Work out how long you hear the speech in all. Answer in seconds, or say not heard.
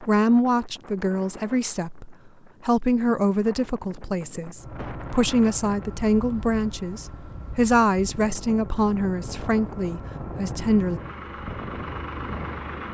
11 s.